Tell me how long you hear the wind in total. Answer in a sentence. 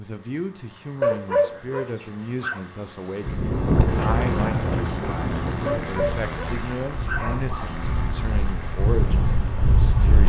The wind can be heard for 7 seconds in total.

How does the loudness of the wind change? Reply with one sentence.
The loudness of the wind goes down, then up.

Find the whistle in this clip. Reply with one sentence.
The whistle can't be heard in this clip.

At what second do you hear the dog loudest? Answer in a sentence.
The volume of the dog peaks at 1 second.